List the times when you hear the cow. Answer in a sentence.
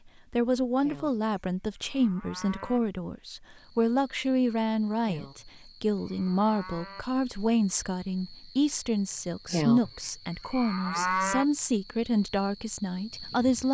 You can hear the cow from 0.8 to 2.8 s, from 5.0 to 7.0 s and from 9.5 to 11.4 s.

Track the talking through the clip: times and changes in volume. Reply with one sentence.
You can hear the talking from 0.1 to 13.6 s, at a steady volume.